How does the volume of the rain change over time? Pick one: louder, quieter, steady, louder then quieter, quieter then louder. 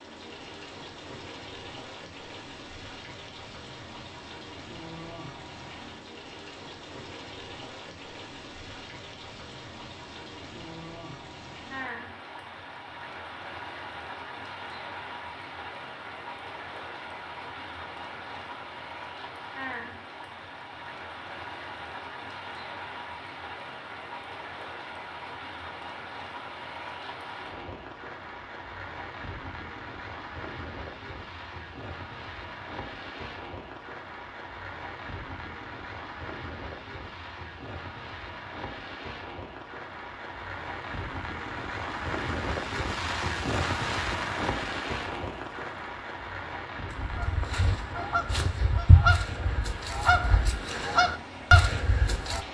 louder.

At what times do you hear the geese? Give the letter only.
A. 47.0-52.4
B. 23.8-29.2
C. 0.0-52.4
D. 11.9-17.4
A.